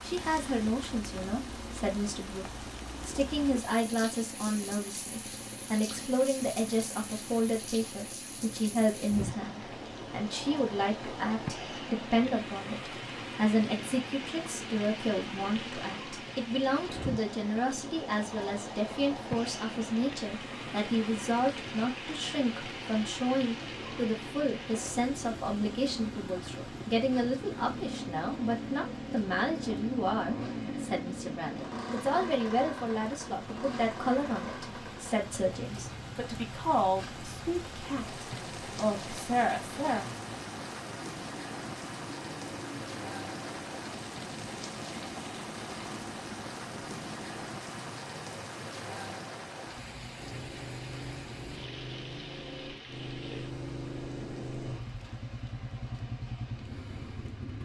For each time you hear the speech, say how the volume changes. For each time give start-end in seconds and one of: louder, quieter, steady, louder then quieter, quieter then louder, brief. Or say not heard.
0.0-40.0 steady.